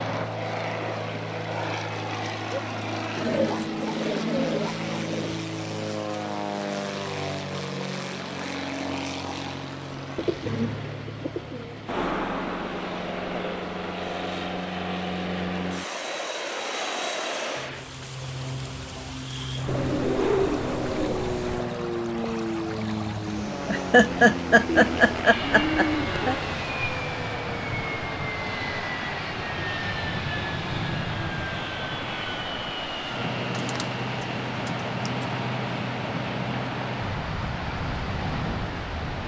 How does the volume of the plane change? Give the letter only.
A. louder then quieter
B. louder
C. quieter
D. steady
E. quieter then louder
D.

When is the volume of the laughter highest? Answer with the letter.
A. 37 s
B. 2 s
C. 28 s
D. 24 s
D.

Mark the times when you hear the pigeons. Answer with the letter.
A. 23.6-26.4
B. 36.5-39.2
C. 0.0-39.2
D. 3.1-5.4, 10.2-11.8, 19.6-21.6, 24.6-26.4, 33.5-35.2
D.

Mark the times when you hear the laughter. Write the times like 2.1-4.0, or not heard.
23.6-26.4.